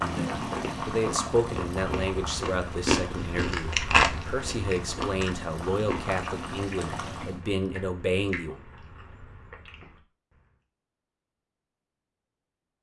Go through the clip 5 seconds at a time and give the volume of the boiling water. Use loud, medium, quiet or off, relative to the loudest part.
loud, loud, off.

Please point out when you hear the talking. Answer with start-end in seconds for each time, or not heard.
0.0-8.6.